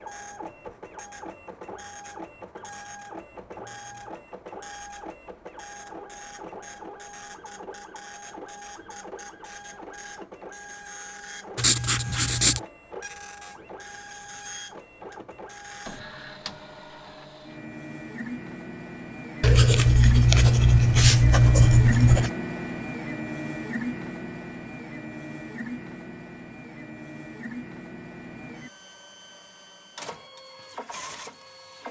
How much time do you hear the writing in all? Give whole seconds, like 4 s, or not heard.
4 s.